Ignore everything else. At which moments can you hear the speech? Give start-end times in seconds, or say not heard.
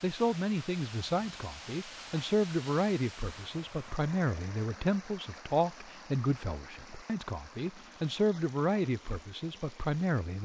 0.0-10.4.